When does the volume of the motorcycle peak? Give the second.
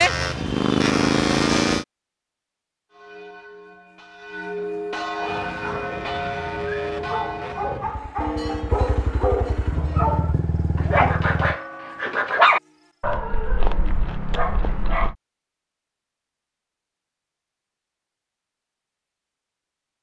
1 s.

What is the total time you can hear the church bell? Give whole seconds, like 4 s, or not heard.
10 s.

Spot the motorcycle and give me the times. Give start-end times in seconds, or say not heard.
0.0-1.9, 5.2-11.6.